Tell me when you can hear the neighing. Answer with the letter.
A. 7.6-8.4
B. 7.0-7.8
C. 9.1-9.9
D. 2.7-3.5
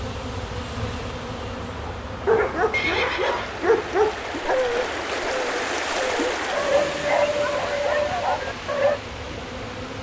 D.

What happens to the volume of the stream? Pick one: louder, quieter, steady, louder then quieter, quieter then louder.
louder then quieter.